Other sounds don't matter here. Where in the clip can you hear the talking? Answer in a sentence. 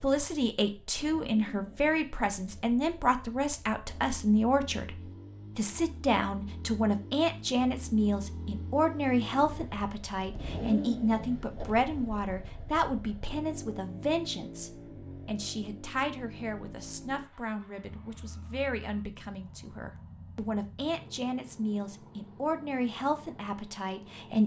The talking can be heard from 0.0 to 24.4 s.